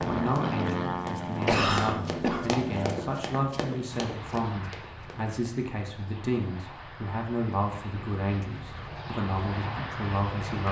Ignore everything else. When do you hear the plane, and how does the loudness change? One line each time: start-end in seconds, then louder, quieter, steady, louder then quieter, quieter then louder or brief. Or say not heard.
0.0-10.6 quieter then louder.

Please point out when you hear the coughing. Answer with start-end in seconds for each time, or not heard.
1.4-2.6.